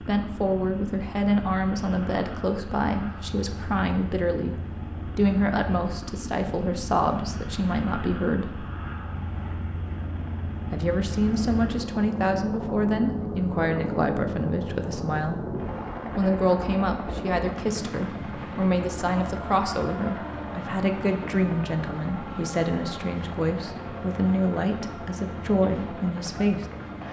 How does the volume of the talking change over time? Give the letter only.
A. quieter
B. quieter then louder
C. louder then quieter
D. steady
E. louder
D.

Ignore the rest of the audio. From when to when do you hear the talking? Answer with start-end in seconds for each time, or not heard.
0.0-8.7, 10.7-15.4, 16.1-26.6.